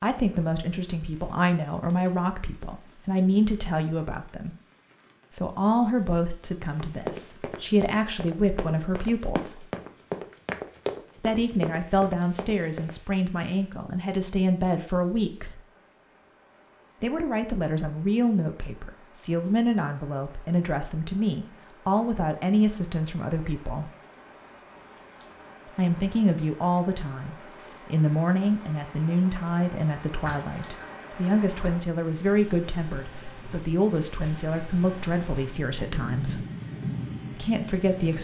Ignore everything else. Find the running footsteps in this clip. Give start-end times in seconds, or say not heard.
6.8-12.9.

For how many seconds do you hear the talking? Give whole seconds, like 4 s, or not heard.
32 s.